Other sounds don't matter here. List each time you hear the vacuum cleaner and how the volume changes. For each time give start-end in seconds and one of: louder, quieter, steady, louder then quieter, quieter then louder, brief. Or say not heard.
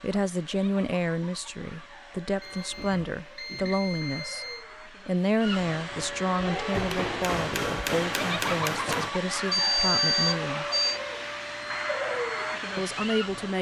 0.0-13.5 louder.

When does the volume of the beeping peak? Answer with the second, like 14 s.
10 s.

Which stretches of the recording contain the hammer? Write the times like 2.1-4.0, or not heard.
6.7-9.1.